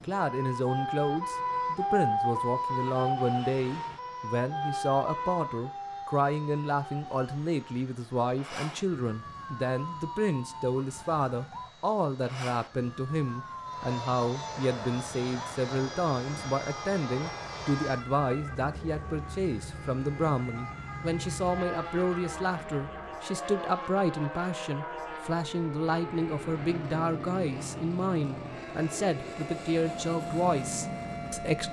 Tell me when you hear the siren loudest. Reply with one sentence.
The loudest moment of the siren is at 2 seconds.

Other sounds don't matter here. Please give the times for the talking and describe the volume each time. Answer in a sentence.
The talking can be heard from 0.0 to 31.6 s, at a steady volume.